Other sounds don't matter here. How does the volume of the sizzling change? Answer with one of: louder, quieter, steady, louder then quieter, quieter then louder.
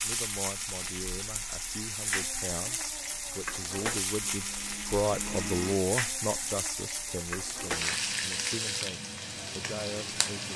steady.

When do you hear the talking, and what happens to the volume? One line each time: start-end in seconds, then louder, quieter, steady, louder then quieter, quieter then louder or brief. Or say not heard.
0.0-10.5 louder then quieter.